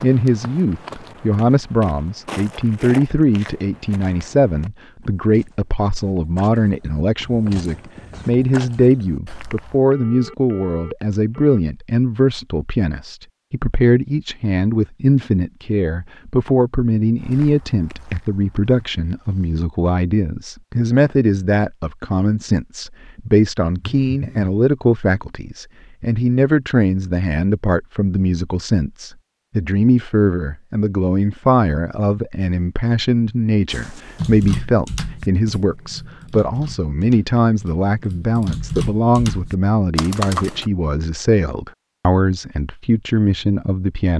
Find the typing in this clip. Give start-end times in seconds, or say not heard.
34.1-40.7.